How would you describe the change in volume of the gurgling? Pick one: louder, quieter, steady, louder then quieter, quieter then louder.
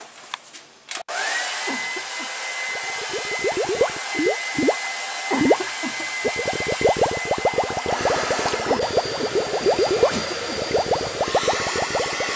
steady.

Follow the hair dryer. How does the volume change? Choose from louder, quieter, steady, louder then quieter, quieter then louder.
steady.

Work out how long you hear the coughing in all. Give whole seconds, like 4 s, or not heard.
4 s.